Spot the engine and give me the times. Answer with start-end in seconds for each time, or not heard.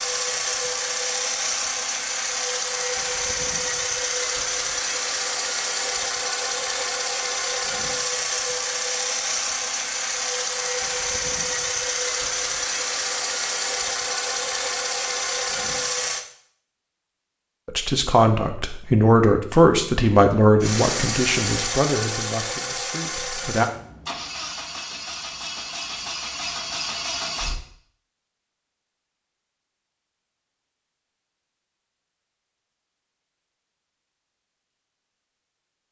0.0-16.2, 20.6-27.6.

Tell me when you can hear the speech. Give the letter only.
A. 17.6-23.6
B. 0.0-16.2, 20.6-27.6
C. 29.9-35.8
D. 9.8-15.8
A.